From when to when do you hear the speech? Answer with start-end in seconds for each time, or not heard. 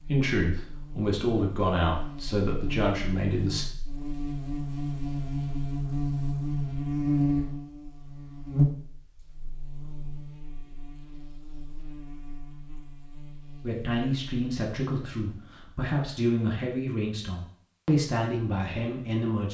0.0-3.6, 13.6-19.4.